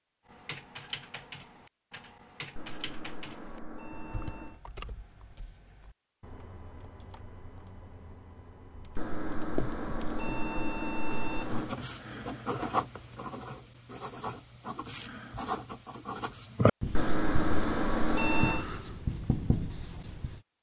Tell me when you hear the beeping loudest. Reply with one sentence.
The volume of the beeping peaks at 18 seconds.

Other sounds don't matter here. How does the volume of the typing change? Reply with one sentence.
The volume of the typing goes down.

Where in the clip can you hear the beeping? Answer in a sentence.
You can hear the beeping from 2.5 to 4.6 s, from 8.9 to 11.8 s and from 16.9 to 18.6 s.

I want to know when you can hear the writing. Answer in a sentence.
You can hear the writing from 9.5 to 20.4 s.